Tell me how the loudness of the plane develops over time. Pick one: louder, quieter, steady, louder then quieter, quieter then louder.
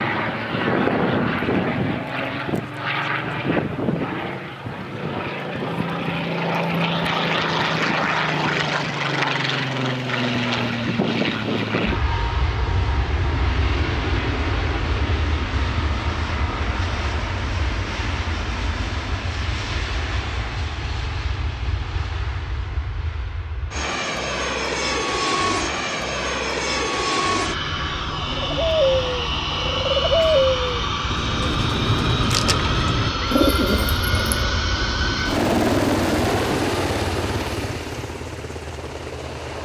quieter then louder.